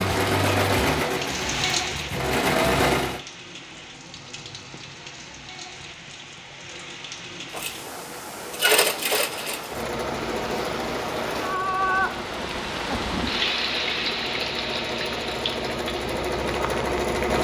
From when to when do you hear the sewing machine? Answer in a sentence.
The sewing machine can be heard from 0.0 to 3.2 s and from 7.5 to 17.3 s.